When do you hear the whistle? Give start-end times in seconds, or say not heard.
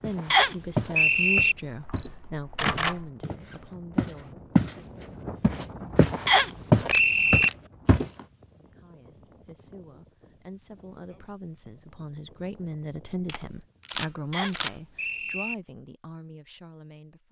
0.3-1.6, 6.2-7.5, 14.3-15.6.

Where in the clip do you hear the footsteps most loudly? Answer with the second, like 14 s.
7 s.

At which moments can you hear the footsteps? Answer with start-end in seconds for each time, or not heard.
0.0-4.8, 5.4-8.1.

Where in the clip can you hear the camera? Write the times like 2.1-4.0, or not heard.
1.8-3.1, 6.8-7.5, 13.2-14.7.